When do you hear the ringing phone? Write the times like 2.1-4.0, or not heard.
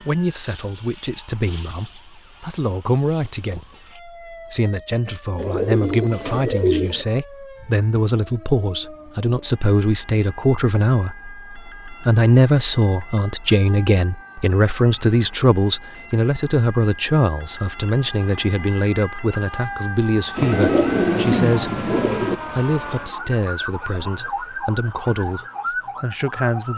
not heard.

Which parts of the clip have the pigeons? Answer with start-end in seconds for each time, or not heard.
5.3-7.0, 20.4-22.4.